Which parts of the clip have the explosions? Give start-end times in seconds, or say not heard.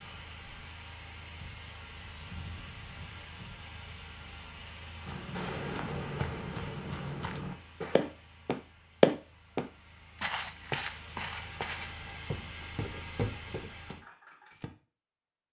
5.3-8.1.